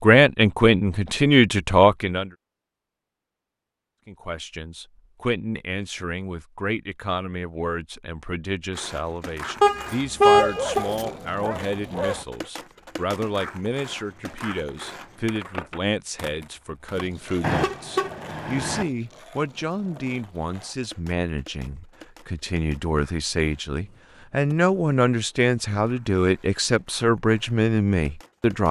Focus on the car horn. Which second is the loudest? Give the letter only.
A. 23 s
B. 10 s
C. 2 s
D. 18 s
B.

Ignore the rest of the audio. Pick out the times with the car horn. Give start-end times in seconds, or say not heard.
9.6-11.1, 17.4-18.9.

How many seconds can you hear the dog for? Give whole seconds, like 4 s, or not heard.
2 s.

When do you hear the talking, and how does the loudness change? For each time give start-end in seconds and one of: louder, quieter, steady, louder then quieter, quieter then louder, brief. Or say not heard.
0.0-2.3 brief
4.0-28.6 louder.